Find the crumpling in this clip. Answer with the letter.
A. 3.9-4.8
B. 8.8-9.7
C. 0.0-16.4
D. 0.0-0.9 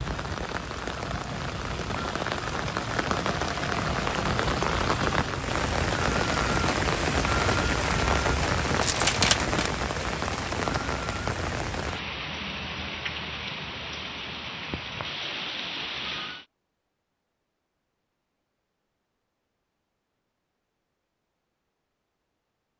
B.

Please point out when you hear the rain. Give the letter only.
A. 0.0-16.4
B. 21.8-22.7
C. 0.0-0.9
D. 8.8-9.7
A.